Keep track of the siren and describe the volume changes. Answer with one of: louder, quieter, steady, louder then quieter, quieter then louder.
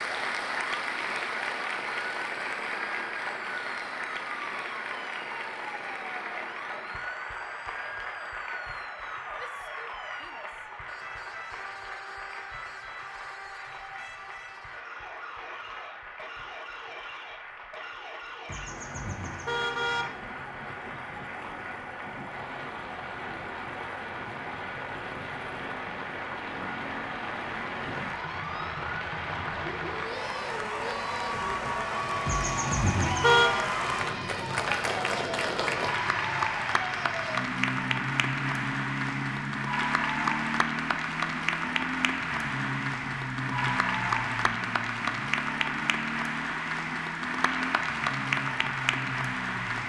louder.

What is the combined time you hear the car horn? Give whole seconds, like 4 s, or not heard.
3 s.